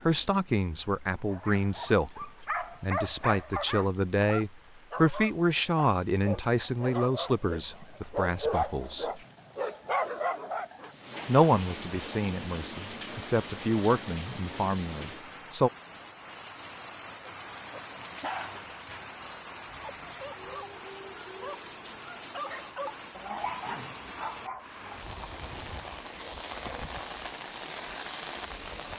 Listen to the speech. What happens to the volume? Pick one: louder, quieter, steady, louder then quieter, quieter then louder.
steady.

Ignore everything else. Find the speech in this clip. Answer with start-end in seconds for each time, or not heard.
0.1-9.2, 11.2-15.7.